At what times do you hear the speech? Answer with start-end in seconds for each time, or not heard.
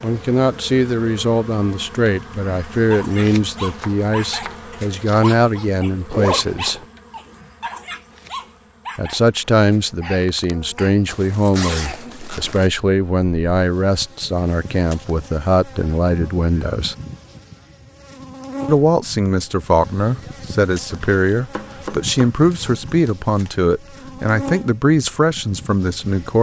0.0-6.8, 8.9-16.9, 18.6-26.3.